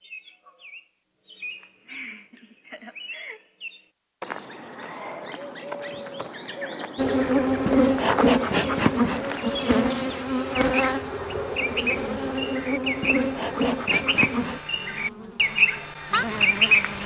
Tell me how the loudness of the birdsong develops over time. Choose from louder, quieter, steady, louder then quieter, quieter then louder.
louder.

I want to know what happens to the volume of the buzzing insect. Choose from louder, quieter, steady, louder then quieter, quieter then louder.
quieter.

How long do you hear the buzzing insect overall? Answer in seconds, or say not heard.
10 s.